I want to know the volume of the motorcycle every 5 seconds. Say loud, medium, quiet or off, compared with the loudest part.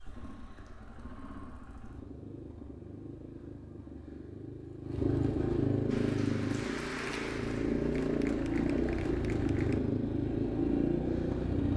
quiet, loud, loud.